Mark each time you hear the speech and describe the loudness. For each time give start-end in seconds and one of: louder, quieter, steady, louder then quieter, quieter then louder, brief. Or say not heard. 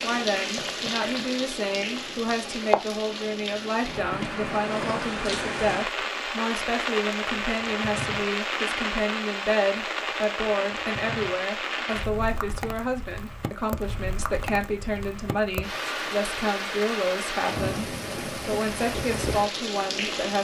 0.0-20.4 steady.